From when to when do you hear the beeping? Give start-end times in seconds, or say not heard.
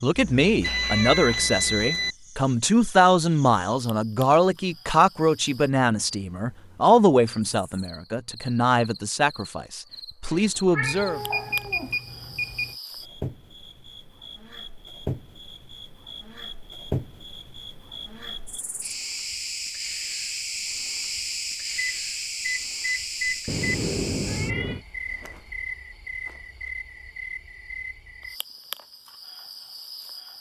0.6-2.1, 10.8-12.8, 21.8-23.6.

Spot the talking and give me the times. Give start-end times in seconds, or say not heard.
0.0-11.2.